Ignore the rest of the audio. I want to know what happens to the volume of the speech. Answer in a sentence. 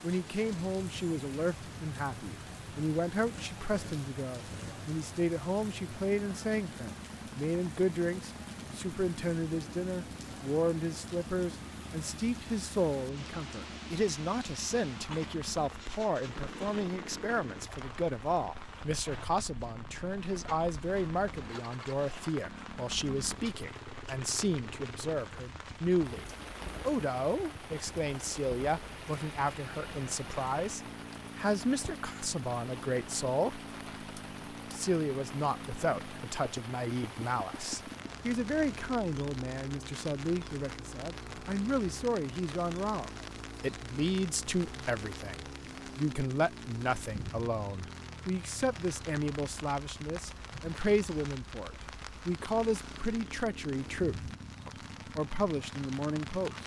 The volume of the speech stays about the same.